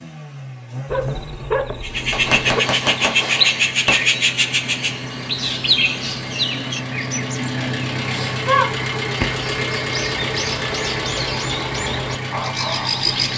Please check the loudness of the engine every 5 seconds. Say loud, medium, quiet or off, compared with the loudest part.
medium, loud, loud.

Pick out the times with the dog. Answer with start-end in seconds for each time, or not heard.
0.8-2.6.